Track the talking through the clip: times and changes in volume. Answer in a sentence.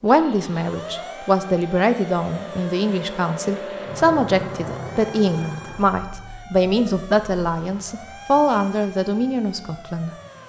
You can hear the talking from 0.0 to 10.1 s, at a steady volume.